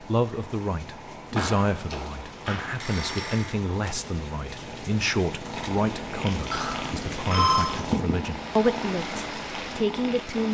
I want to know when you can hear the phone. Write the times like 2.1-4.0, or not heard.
1.4-3.6, 6.5-7.7.